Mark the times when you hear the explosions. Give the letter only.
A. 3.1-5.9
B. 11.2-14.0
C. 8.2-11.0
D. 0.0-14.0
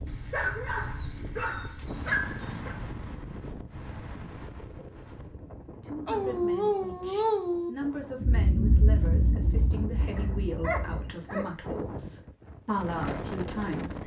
C.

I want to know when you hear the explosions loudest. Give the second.
9 s.